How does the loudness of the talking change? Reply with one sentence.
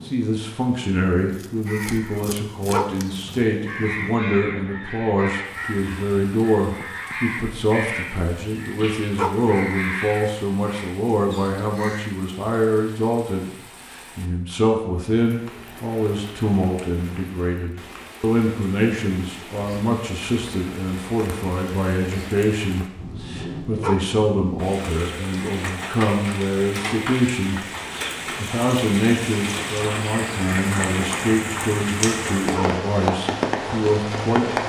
The volume of the talking stays about the same.